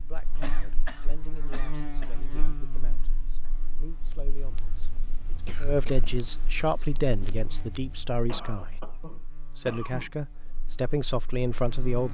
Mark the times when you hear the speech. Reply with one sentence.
The speech can be heard from 0.0 to 8.8 s and from 9.6 to 12.0 s.